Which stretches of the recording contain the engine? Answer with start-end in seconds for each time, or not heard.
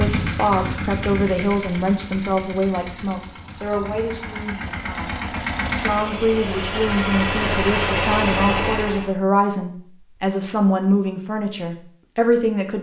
0.0-9.2.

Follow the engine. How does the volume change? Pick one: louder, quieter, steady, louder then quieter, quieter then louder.
quieter then louder.